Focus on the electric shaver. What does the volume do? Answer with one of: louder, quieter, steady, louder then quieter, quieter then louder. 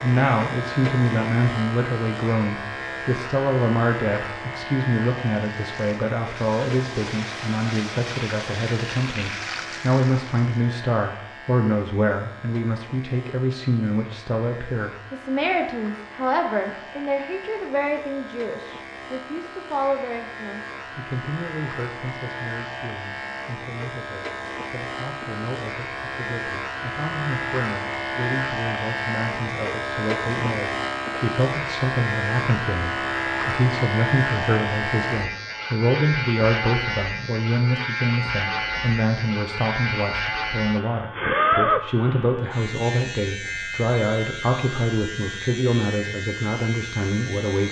quieter then louder.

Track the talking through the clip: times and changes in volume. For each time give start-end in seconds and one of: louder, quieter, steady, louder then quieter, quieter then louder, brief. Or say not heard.
0.0-47.6 quieter then louder.